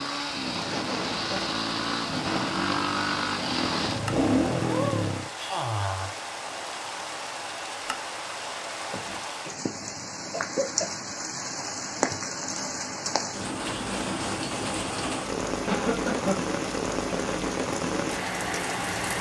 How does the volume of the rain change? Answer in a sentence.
The loudness of the rain goes up.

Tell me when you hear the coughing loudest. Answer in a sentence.
The loudest moment of the coughing is at 16 seconds.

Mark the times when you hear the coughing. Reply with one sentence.
The coughing can be heard from 0.7 to 1.4 s, from 8.8 to 10.9 s and from 15.7 to 16.4 s.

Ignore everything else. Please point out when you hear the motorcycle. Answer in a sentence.
You can hear the motorcycle from 0.0 to 5.3 s.